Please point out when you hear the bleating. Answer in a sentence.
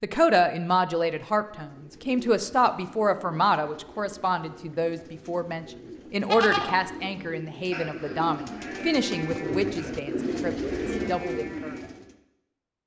The bleating can be heard from 6.3 to 11.8 s.